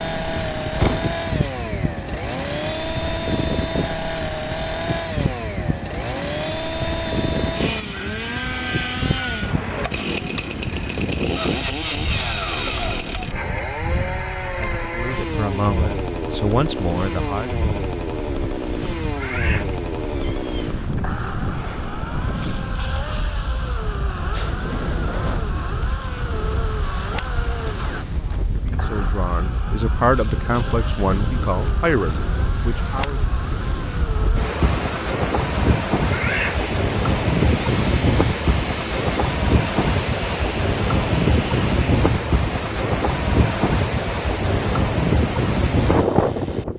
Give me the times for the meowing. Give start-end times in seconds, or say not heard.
19.1-20.6, 36.0-36.6.